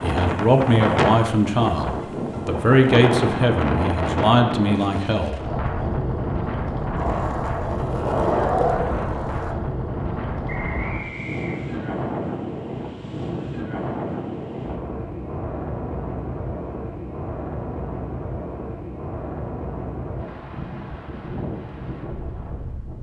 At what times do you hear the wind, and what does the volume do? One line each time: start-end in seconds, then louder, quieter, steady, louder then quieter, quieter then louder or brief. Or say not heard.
0.0-22.9 quieter.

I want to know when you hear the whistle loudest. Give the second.
11 s.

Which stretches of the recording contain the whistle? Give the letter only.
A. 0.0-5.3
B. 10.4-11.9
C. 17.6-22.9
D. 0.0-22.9
B.